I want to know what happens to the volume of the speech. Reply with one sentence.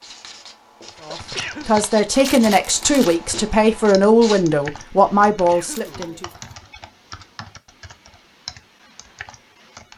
The volume of the speech stays about the same.